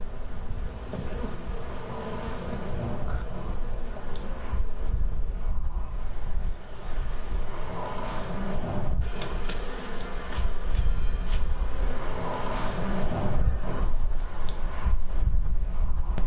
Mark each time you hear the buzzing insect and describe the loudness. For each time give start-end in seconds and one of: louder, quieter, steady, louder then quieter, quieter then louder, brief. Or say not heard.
0.0-5.5 quieter
9.0-13.8 quieter.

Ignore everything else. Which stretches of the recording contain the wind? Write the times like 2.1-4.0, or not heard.
0.0-16.2.